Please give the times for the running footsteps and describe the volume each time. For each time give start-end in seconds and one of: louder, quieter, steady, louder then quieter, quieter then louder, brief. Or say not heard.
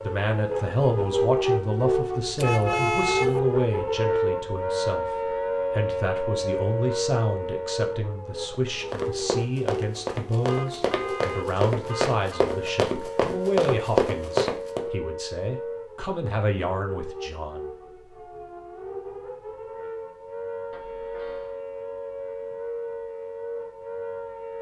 8.5-14.9 louder.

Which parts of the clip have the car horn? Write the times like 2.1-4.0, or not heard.
2.4-3.4, 10.4-12.6, 20.7-21.6.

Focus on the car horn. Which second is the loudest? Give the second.
3 s.